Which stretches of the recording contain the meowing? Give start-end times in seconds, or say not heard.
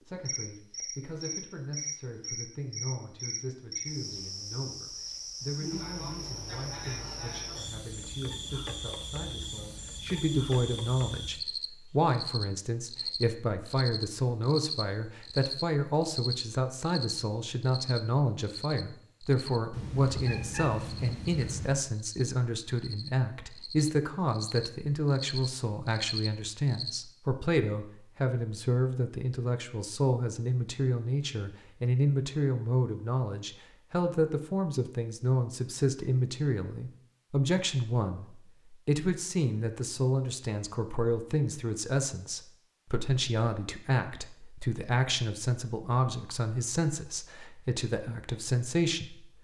19.7-21.8.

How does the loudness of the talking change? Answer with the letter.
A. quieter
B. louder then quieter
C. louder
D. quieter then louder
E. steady
C.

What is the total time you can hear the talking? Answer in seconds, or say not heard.
49 s.